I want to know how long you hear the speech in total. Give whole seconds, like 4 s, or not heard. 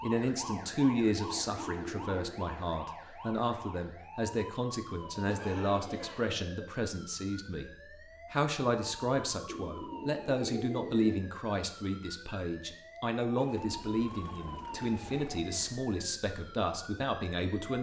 17 s.